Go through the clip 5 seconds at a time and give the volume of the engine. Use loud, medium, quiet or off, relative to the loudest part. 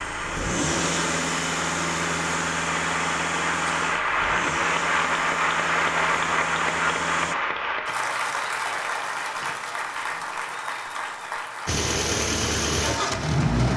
medium, medium, loud.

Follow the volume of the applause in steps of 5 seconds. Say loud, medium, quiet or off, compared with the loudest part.
loud, loud, medium.